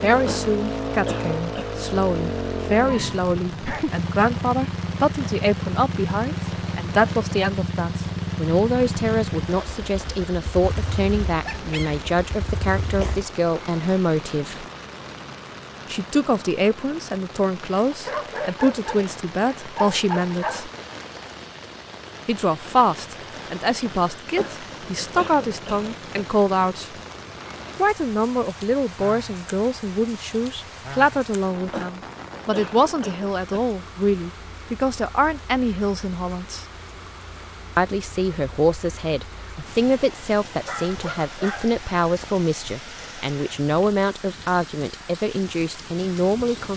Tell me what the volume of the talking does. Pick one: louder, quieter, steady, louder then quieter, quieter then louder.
steady.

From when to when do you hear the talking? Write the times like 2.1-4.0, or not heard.
0.0-14.7, 15.9-20.7, 22.2-26.9, 27.8-36.6, 37.8-46.7.